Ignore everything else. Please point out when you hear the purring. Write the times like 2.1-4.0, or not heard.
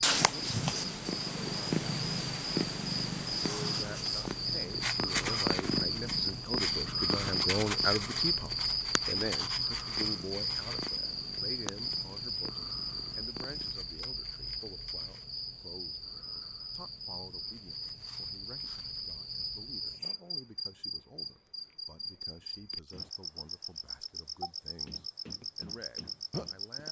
0.0-13.8.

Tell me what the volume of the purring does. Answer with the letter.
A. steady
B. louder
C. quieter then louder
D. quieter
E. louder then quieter
D.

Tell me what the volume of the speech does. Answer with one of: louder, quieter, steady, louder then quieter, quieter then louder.
quieter.